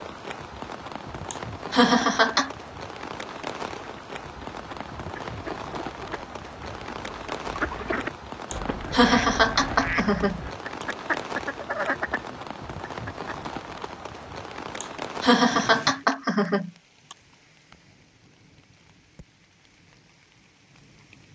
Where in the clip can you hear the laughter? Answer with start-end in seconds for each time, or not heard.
1.3-2.5, 8.5-10.8, 14.8-17.1.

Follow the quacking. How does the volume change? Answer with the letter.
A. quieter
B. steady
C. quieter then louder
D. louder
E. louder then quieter
D.